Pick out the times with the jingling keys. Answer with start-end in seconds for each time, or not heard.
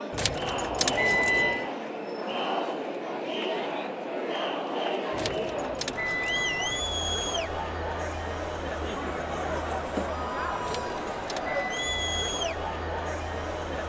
0.1-1.7, 5.1-6.8, 10.6-12.3.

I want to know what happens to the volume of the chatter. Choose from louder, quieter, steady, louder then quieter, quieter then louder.
steady.